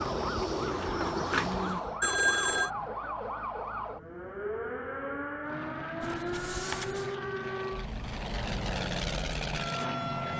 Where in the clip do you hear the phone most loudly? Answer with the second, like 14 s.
2 s.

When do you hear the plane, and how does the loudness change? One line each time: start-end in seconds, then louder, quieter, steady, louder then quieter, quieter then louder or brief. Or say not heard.
0.0-3.0 brief
5.4-10.3 louder.